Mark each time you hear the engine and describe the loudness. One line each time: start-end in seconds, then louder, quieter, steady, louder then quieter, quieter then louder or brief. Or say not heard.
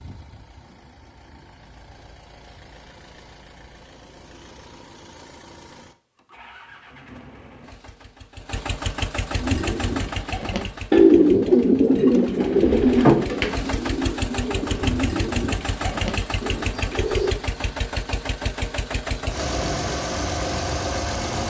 0.0-21.4 louder.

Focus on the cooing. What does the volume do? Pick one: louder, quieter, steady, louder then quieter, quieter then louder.
quieter.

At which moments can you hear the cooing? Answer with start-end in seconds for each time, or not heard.
9.4-17.4.